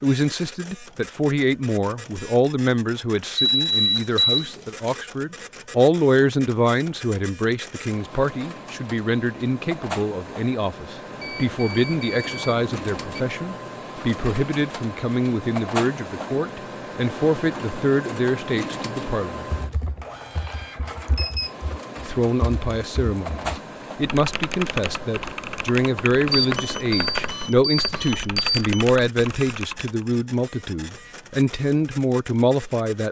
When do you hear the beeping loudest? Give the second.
4 s.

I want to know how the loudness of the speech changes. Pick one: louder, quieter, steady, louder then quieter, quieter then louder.
steady.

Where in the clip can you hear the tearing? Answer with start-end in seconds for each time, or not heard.
not heard.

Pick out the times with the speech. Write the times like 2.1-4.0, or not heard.
0.0-19.4, 22.0-33.0.